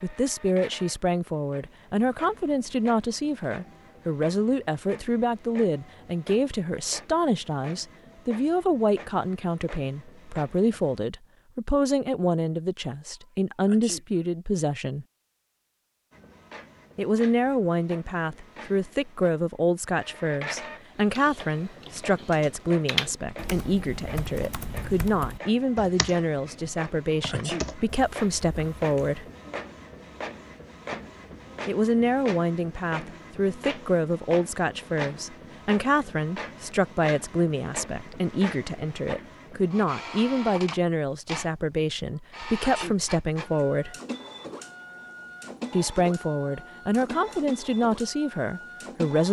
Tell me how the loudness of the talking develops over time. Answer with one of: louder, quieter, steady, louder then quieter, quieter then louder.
steady.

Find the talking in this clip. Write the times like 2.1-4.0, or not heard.
0.0-15.1, 16.9-29.2, 31.6-44.0, 45.7-49.2.